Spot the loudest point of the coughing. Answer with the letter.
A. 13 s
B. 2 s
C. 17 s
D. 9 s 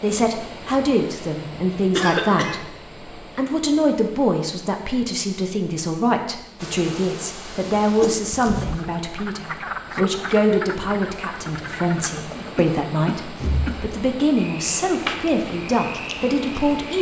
B.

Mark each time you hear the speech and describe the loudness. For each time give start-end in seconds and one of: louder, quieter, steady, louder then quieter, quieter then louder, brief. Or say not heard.
0.0-16.9 steady.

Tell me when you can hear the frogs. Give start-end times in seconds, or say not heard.
8.4-12.5, 13.3-16.9.